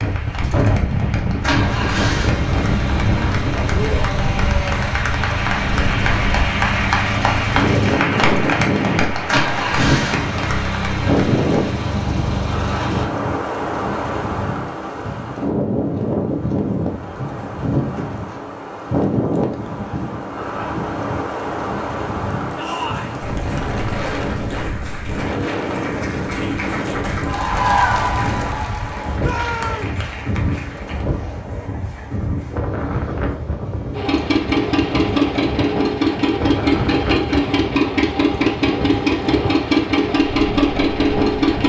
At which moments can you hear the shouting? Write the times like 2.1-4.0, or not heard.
3.7-4.8, 22.6-23.2, 29.2-30.0.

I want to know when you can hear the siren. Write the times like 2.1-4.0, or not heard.
not heard.